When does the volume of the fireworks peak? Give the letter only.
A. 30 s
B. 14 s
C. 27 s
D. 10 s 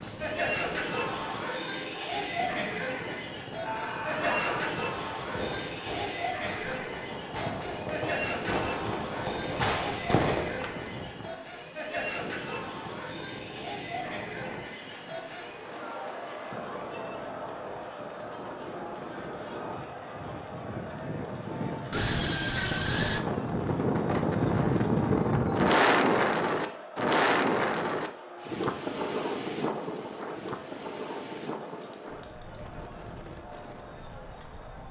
D.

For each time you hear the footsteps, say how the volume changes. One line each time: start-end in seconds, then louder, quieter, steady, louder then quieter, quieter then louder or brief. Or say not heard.
not heard.